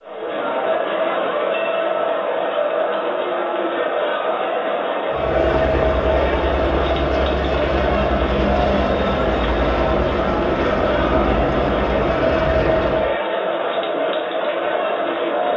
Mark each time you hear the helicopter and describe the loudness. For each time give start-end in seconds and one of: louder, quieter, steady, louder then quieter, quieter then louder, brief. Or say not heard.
5.1-13.2 steady.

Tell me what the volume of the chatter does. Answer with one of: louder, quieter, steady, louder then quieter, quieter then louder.
steady.